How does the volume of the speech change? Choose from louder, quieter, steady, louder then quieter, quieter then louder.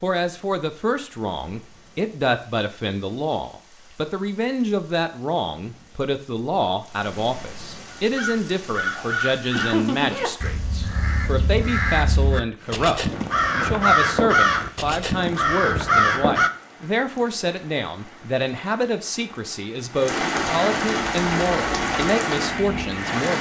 steady.